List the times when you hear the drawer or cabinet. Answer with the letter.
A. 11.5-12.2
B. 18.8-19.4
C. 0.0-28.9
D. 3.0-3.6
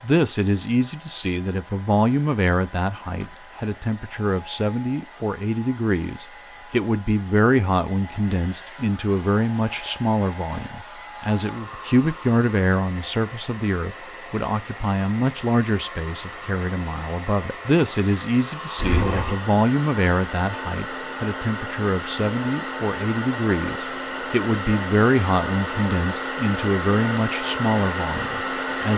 B.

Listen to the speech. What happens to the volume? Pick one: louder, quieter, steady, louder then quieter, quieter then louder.
steady.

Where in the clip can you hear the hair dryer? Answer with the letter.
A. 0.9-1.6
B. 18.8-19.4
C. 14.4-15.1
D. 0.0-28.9
D.